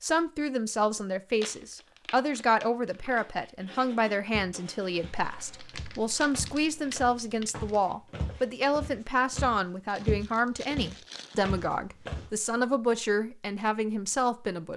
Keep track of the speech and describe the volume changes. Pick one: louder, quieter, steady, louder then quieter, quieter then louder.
steady.